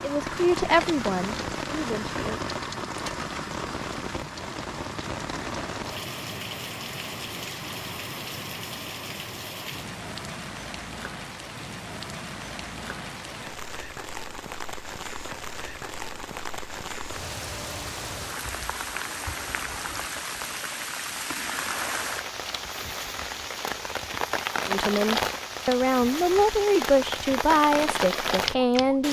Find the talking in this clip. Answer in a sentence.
The talking can be heard from 0.0 to 2.4 s and from 24.6 to 29.0 s.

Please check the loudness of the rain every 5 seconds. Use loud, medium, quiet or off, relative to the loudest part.
loud, medium, medium, medium, loud, loud.